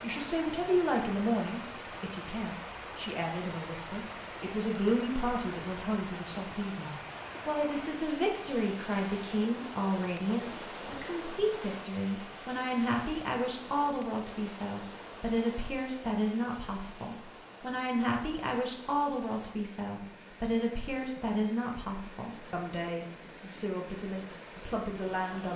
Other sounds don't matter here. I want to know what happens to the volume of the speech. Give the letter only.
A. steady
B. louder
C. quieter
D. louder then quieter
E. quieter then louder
A.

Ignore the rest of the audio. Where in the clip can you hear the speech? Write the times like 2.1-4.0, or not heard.
0.0-25.5.